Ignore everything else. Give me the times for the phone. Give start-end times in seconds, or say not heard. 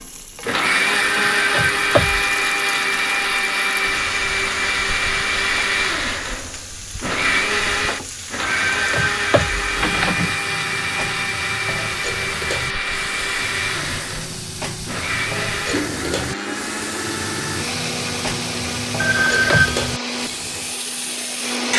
1.1-2.2, 8.4-10.4, 19.0-19.9.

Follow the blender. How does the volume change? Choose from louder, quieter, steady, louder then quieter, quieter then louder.
quieter.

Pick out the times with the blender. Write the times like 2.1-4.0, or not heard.
0.0-21.7.